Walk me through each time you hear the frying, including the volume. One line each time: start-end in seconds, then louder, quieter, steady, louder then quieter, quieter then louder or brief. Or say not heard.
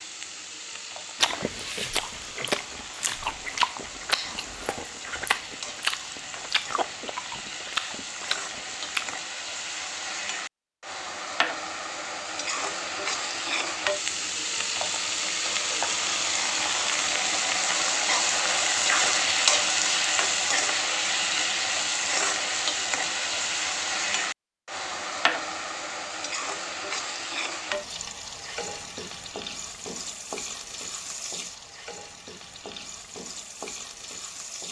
0.0-34.6 louder then quieter.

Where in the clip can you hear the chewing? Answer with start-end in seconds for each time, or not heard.
1.2-9.2.